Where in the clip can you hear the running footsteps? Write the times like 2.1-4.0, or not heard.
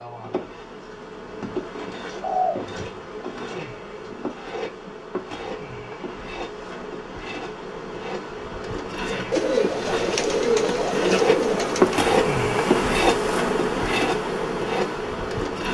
not heard.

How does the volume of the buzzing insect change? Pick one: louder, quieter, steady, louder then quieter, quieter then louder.
louder.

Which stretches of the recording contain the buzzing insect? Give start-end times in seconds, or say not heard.
0.0-15.6.